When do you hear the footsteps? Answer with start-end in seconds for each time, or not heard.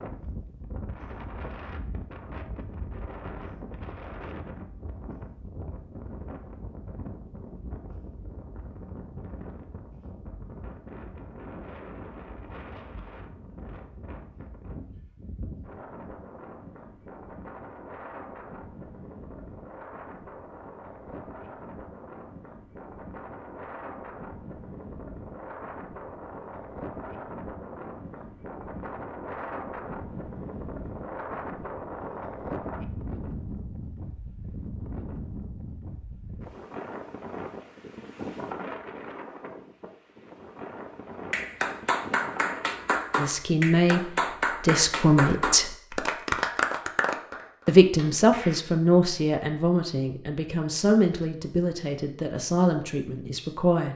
not heard.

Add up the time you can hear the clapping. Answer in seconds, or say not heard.
7 s.